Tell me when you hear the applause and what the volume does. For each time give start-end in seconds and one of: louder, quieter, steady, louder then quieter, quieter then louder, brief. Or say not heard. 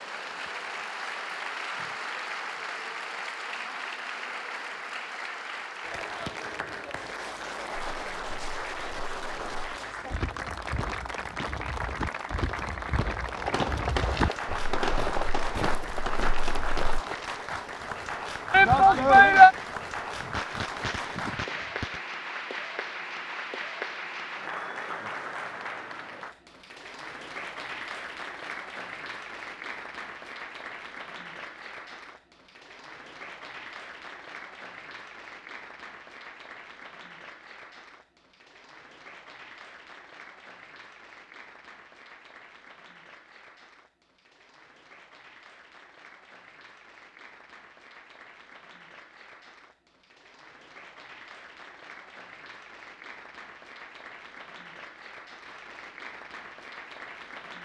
0.0-57.6 quieter.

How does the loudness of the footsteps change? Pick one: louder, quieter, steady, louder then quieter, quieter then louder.
louder.